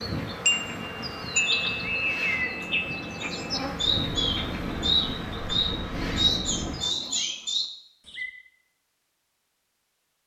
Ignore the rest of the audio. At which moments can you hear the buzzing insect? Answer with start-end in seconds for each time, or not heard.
0.0-7.0.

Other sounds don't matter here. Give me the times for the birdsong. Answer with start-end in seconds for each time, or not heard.
0.0-8.3.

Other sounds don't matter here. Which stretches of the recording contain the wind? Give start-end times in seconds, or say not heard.
0.2-6.8.